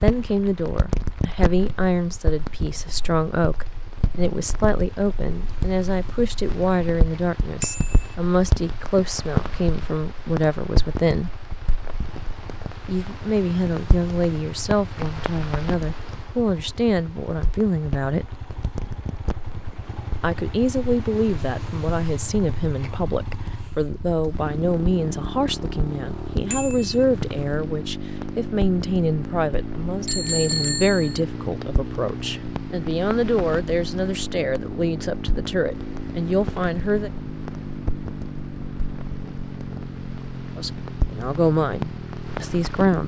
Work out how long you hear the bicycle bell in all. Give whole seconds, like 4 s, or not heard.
2 s.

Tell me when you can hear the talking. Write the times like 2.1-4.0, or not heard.
0.0-11.3, 12.8-18.4, 20.2-37.1, 40.5-43.0.